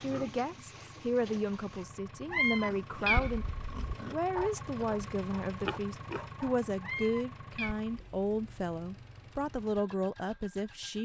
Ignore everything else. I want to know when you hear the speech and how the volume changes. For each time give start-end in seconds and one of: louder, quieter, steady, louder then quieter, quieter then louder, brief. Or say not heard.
0.0-11.0 steady.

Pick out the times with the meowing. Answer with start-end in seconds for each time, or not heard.
2.3-3.7, 6.8-7.8.